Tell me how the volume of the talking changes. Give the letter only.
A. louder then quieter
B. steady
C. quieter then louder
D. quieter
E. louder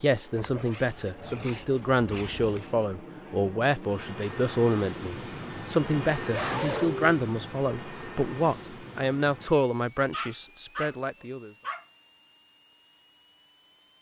B.